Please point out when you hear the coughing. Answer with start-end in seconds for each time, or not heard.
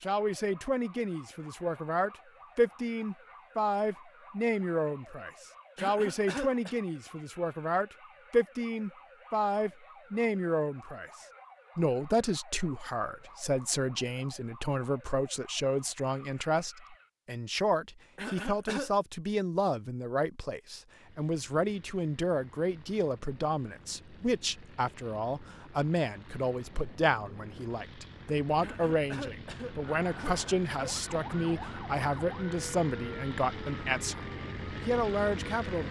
5.8-6.8, 18.1-18.9, 28.6-31.0.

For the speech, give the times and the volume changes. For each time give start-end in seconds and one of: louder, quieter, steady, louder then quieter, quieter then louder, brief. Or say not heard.
0.0-34.2 steady
34.9-35.8 brief.